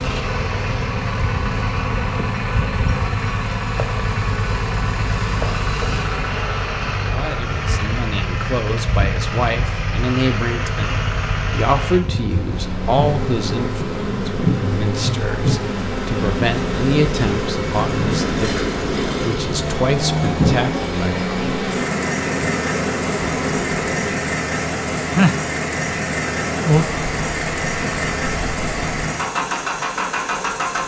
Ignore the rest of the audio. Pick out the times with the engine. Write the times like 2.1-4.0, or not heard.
0.0-30.8.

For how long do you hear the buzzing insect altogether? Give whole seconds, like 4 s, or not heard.
29 s.